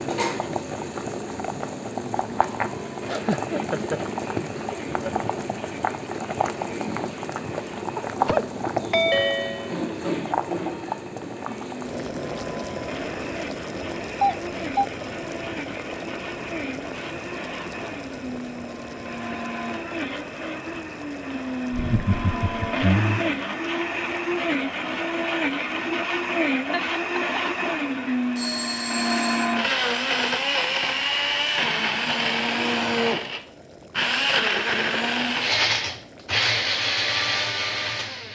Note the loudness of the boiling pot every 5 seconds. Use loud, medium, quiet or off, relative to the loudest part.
loud, loud, loud, medium, quiet, quiet, quiet, quiet.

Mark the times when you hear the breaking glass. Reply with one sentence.
You can't hear the breaking glass here.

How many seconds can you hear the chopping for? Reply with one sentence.
The chopping can't be heard in this clip.